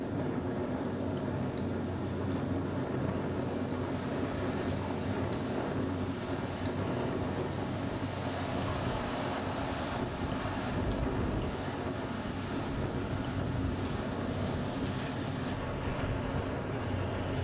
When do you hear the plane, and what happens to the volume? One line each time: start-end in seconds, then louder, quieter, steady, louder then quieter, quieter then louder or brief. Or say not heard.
0.0-17.3 steady.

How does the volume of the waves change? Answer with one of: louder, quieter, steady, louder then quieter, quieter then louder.
steady.